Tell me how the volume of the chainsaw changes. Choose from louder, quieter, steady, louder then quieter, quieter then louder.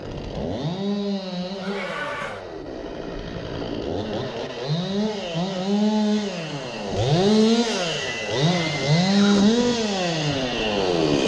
louder.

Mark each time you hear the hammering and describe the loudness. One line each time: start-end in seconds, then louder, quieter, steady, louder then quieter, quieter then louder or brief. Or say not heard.
not heard.